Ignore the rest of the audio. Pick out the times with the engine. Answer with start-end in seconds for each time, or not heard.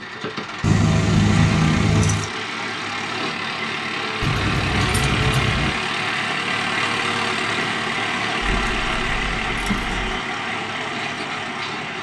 0.0-11.9.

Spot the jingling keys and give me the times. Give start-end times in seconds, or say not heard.
0.6-2.2, 4.2-5.8, 8.4-10.0.